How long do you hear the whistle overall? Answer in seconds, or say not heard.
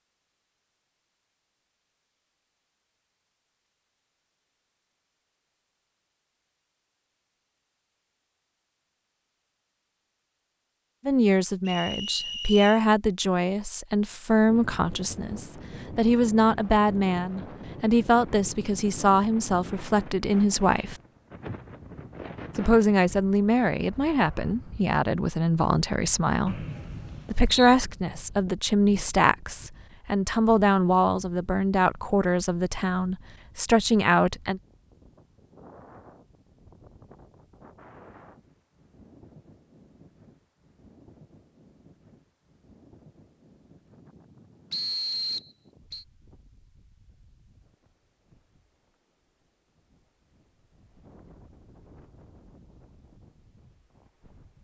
4 s.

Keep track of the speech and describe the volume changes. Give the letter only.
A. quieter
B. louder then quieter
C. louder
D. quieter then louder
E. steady
E.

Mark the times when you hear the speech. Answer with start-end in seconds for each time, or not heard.
11.1-21.0, 22.6-26.6, 27.2-34.6.